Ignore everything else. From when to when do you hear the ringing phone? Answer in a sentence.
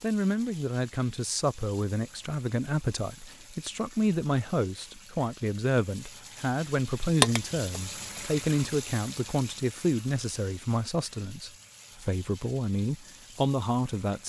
The ringing phone can be heard from 7.2 to 8.2 s.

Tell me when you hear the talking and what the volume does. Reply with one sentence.
The talking can be heard from 0.0 to 14.2 s, at a steady volume.